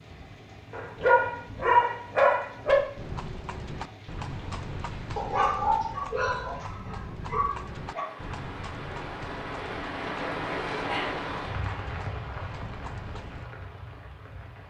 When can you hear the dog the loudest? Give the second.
2 s.